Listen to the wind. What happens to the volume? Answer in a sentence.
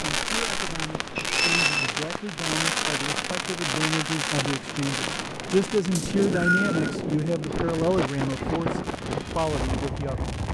The volume of the wind goes up.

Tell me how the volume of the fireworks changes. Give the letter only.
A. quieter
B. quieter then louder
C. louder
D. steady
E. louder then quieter
A.